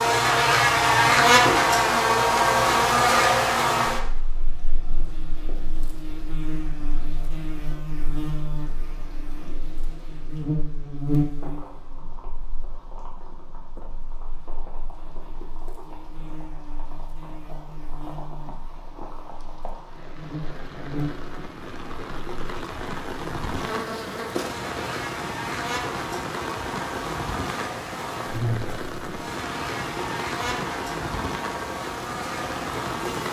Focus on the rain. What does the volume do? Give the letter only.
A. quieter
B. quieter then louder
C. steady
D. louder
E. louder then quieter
D.